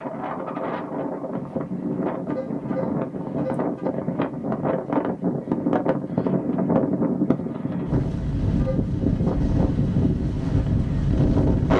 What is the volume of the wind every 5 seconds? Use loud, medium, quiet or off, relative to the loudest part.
medium, loud, loud.